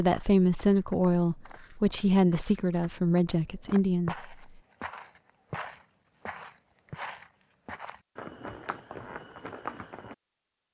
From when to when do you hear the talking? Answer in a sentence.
You can hear the talking from 0.0 to 4.3 s.